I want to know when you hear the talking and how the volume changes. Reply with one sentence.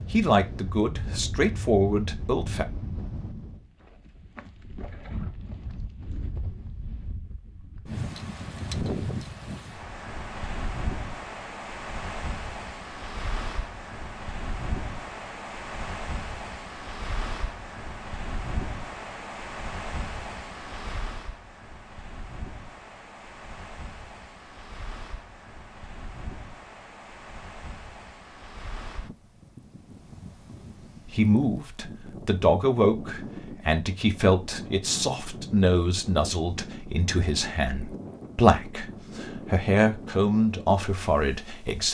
You can hear the talking briefly from 0.1 to 2.6 s; and from 31.1 to 41.8 s, at a steady volume.